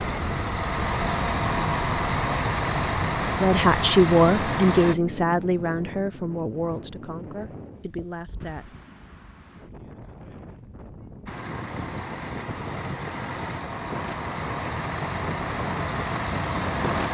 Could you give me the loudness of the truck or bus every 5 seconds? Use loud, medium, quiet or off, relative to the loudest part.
loud, off, medium, loud.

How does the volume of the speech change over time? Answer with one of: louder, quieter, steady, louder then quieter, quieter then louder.
quieter.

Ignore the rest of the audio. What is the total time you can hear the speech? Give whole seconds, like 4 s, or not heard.
5 s.